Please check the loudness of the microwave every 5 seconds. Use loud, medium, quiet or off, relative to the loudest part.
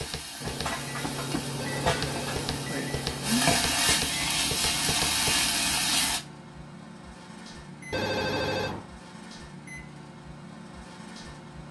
loud, medium, medium.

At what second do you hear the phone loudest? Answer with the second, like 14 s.
8 s.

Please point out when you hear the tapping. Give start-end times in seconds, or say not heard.
0.0-5.4.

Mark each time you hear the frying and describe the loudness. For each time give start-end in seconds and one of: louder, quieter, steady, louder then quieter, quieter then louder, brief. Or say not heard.
0.0-6.2 louder.